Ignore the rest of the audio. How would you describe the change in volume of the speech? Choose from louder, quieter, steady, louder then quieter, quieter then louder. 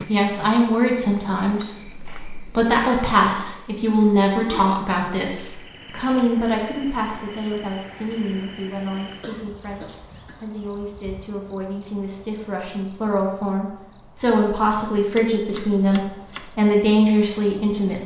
quieter then louder.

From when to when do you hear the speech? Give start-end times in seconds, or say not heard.
0.1-18.0.